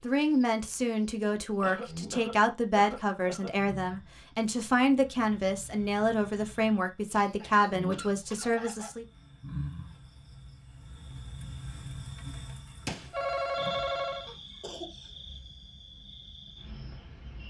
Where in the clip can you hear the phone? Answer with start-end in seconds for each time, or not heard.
12.8-14.3.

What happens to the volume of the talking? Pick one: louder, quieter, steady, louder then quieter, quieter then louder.
steady.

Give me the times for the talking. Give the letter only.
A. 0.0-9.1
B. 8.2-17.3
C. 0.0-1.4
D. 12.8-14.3
A.